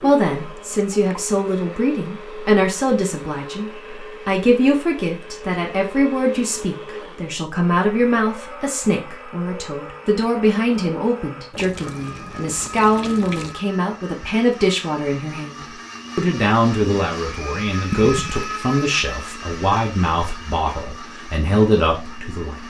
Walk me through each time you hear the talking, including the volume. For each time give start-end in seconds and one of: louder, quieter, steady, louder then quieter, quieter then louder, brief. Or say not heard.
0.0-22.6 steady.